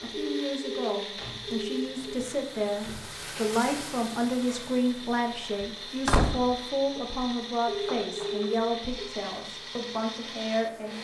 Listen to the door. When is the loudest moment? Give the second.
6 s.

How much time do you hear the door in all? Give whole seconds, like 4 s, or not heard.
3 s.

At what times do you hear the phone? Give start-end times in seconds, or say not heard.
0.1-2.1, 7.7-9.1.